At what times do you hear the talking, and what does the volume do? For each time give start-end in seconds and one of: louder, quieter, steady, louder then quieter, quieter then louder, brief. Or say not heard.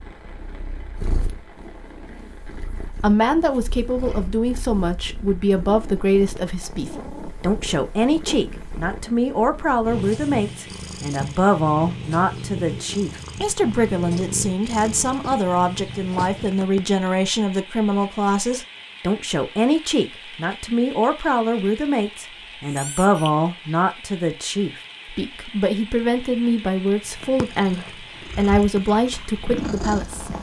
3.0-30.3 steady.